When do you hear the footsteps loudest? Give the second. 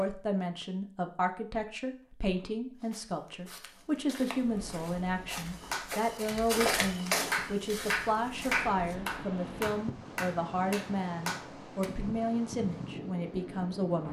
7 s.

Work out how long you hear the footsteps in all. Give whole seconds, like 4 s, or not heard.
6 s.